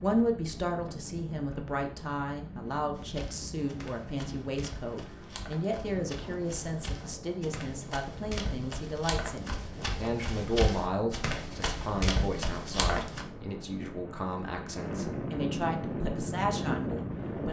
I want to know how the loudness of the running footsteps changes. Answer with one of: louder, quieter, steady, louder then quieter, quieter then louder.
louder.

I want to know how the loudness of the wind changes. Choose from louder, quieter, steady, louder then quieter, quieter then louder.
louder.